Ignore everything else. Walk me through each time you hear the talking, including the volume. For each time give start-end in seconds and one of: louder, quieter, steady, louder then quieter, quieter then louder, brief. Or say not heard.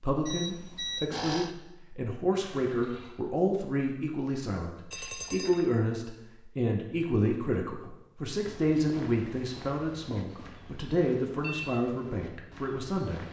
0.0-13.2 steady.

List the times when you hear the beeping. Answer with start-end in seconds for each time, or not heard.
0.2-1.5, 4.9-5.7, 11.4-11.8.